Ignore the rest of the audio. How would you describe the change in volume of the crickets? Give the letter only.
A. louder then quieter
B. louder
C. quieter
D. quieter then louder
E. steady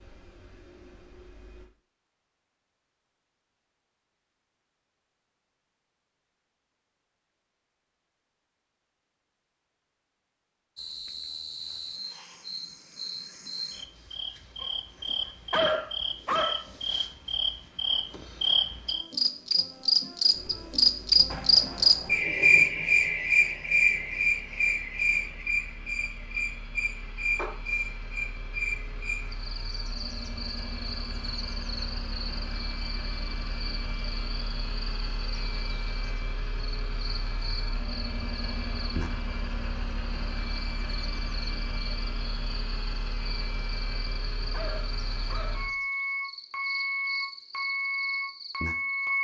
A.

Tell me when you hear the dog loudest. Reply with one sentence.
The volume of the dog peaks at 16 seconds.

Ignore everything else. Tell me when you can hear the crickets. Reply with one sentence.
You can hear the crickets from 10.8 to 49.2 s.